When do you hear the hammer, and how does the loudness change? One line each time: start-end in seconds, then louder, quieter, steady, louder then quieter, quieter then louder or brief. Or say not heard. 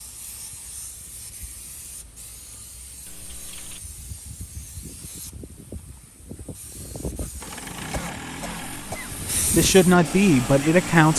not heard.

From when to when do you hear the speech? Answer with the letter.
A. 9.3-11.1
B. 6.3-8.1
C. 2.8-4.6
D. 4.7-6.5
A.